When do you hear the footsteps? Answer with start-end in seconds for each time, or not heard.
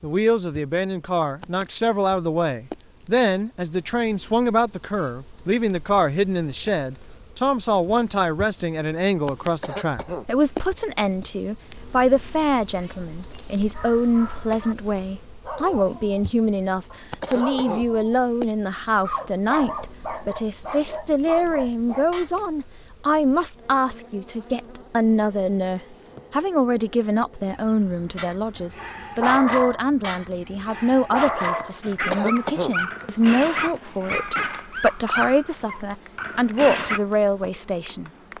not heard.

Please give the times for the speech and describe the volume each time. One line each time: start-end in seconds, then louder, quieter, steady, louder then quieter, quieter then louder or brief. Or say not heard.
0.0-38.1 steady.